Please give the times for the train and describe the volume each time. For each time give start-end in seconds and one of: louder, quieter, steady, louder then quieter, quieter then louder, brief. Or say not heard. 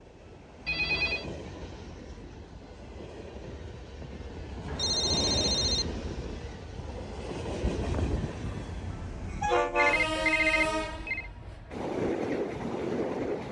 0.0-13.4 louder.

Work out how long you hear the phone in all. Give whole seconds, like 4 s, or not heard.
3 s.